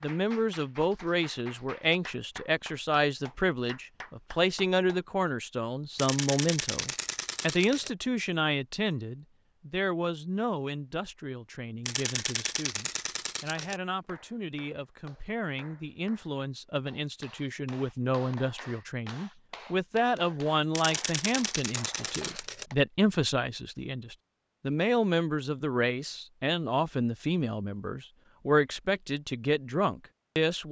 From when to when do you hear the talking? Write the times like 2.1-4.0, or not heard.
0.0-30.6.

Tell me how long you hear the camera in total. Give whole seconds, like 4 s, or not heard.
6 s.